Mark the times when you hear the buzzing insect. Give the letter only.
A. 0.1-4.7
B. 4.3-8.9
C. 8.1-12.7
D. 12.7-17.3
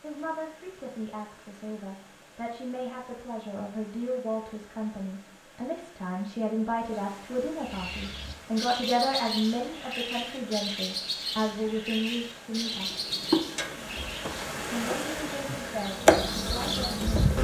D.